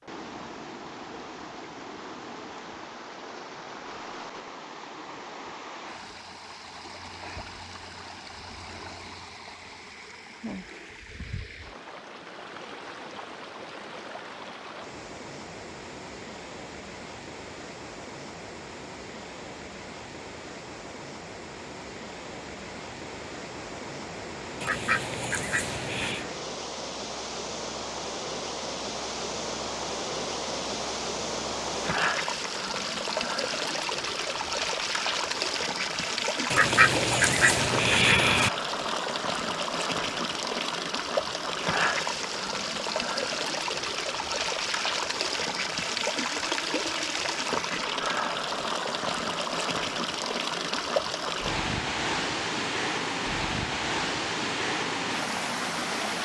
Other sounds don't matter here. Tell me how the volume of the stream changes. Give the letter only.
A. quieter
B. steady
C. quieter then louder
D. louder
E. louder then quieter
D.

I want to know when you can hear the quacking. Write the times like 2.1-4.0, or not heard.
24.6-26.2, 36.5-38.5.